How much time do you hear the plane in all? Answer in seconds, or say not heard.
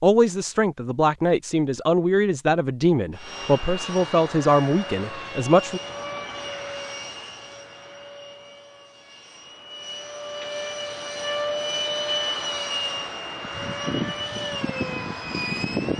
13 s.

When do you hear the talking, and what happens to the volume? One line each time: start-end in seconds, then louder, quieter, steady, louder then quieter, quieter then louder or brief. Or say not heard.
0.0-5.8 steady.